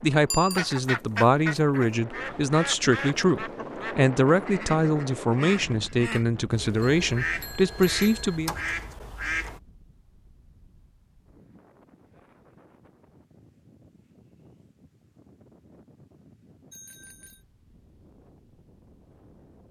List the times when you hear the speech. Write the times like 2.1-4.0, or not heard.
0.0-8.5.